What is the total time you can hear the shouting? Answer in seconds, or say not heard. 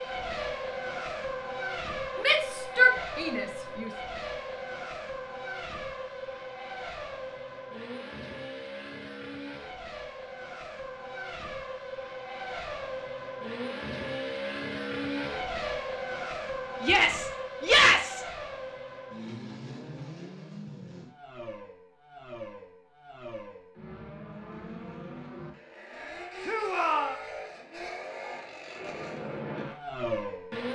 4 s.